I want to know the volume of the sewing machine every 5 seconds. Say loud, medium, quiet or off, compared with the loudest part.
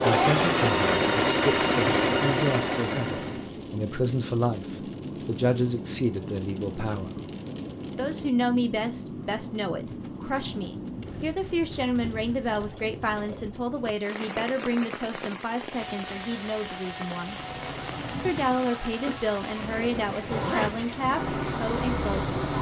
loud, off, off, quiet, medium.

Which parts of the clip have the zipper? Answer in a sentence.
You can hear the zipper from 20.2 to 20.9 s.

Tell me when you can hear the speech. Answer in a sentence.
You can hear the speech from 0.0 to 7.2 s, from 8.0 to 17.4 s and from 18.2 to 22.2 s.